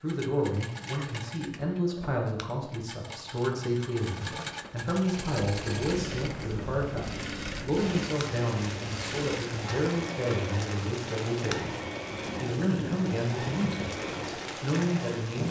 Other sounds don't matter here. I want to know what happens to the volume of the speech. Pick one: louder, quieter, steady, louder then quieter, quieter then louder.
steady.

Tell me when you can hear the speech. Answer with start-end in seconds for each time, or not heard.
0.0-11.8, 12.4-15.4.